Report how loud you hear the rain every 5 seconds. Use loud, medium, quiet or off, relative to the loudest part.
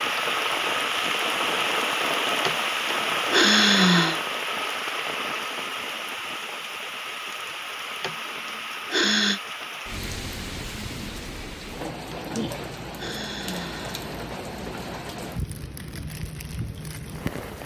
loud, medium, medium, medium.